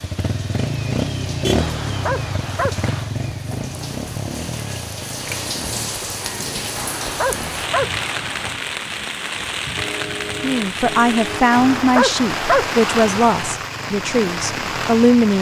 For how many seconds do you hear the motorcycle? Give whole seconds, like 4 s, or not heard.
12 s.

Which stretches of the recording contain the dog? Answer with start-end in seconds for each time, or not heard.
1.6-3.1, 6.8-8.6, 11.5-13.6.